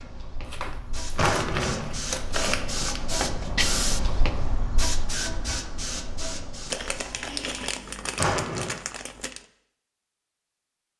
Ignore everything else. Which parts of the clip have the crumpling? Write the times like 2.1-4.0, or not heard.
0.4-3.0, 6.7-9.4.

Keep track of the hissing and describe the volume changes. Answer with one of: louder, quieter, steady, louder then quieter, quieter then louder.
louder then quieter.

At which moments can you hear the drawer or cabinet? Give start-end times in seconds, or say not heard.
1.1-2.0, 8.2-8.8.